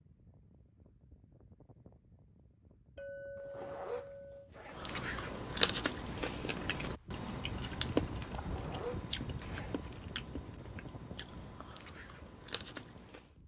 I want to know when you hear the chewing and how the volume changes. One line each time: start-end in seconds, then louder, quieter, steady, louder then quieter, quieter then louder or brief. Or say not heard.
4.8-13.3 quieter.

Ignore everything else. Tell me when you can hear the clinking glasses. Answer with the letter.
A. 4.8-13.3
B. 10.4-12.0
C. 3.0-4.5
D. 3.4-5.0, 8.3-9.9
C.